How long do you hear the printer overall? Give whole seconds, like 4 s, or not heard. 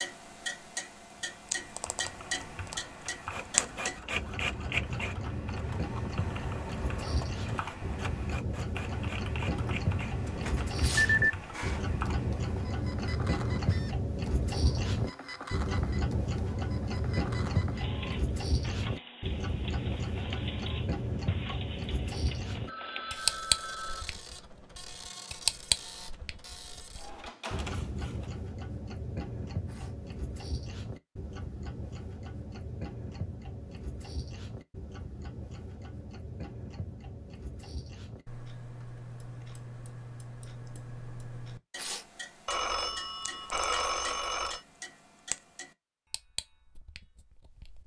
25 s.